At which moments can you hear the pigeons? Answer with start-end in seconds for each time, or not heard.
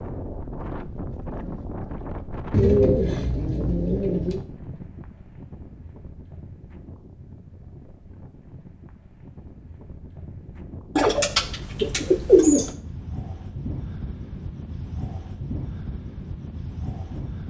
2.5-4.4, 10.9-12.8.